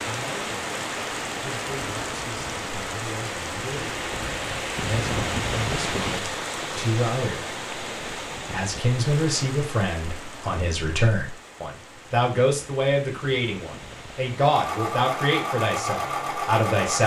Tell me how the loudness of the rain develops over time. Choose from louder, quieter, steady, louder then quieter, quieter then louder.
quieter.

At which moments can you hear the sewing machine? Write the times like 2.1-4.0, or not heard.
14.4-17.0.